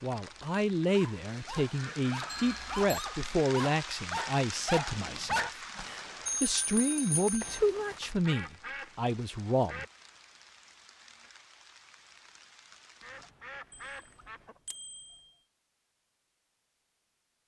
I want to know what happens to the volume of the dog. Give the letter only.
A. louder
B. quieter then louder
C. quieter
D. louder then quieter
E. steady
A.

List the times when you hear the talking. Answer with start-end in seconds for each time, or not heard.
0.0-9.8.